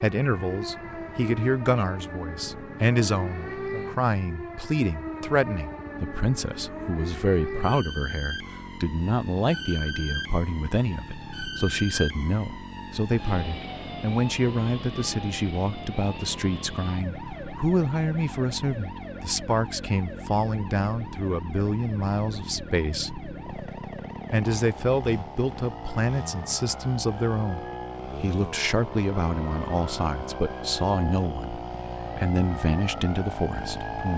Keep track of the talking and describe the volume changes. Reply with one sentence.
The volume of the talking stays about the same.